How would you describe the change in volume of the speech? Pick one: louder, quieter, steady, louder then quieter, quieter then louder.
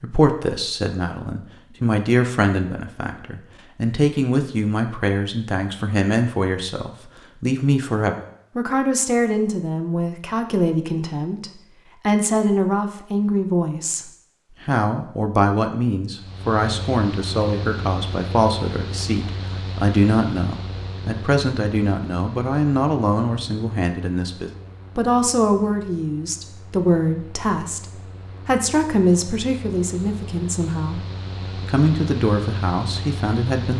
steady.